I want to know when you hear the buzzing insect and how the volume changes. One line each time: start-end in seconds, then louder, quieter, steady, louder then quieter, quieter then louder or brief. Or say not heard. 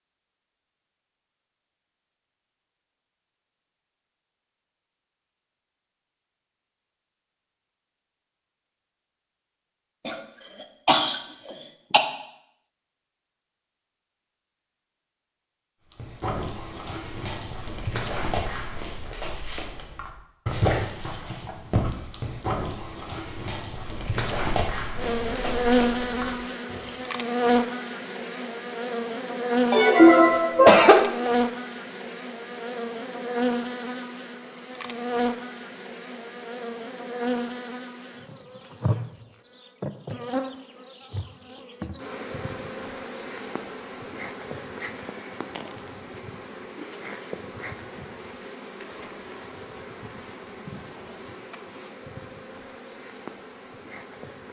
24.9-54.4 quieter.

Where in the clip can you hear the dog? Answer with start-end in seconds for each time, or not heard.
15.9-26.9.